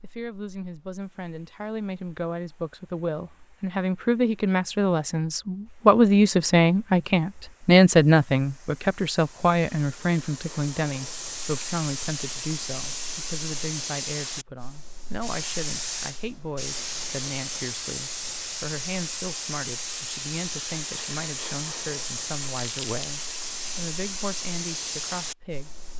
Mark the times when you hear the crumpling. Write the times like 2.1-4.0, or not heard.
22.6-23.1.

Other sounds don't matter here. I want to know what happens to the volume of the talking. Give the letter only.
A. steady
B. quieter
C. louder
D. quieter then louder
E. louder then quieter
E.